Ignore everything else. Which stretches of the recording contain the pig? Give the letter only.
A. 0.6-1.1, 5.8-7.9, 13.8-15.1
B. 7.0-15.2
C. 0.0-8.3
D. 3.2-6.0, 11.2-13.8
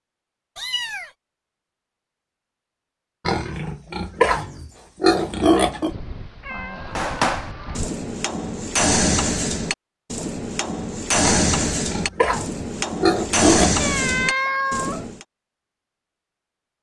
D.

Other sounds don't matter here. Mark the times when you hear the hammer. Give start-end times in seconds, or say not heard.
7.0-15.2.